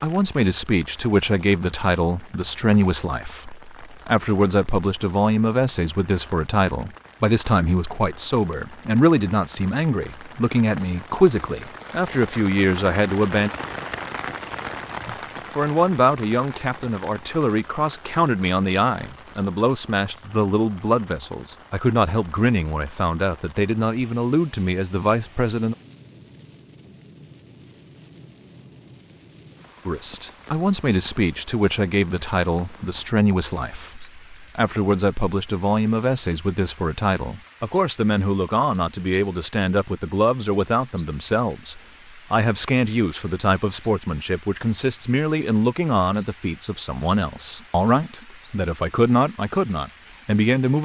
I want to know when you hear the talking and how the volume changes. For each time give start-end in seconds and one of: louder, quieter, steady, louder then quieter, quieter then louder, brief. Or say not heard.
0.0-13.5 steady
15.1-25.8 steady
29.9-50.8 steady.